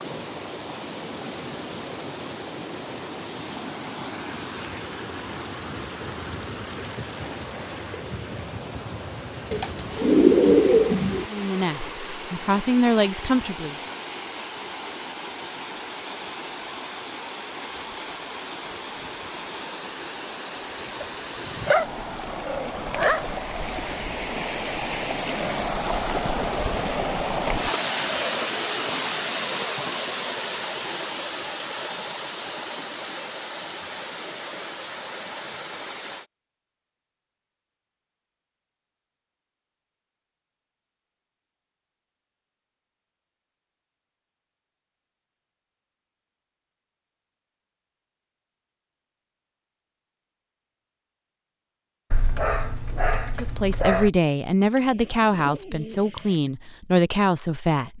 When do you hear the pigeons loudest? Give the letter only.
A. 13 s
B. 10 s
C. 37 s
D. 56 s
B.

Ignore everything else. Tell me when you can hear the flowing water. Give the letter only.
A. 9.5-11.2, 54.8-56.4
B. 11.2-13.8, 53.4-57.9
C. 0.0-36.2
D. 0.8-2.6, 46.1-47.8
C.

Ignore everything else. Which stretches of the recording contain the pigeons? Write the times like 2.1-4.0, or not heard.
9.5-11.2, 54.8-56.4.